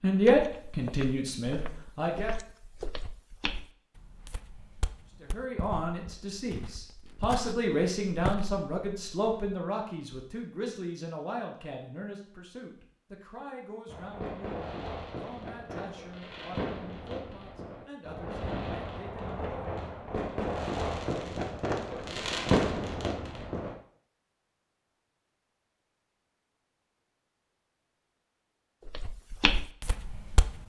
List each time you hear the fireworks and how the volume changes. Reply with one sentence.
You can hear the fireworks from 13.8 to 23.8 s, getting louder.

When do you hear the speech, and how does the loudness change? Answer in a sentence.
You can hear the speech briefly from 0.0 to 2.4 s; and from 5.2 to 19.8 s, getting quieter.